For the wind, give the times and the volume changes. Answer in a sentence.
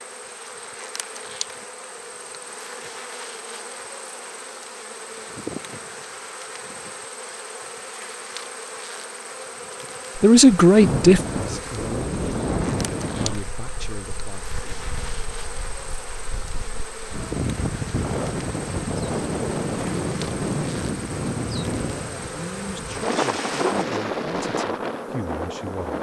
You can hear the wind from 10.8 to 25.9 s, getting quieter then louder.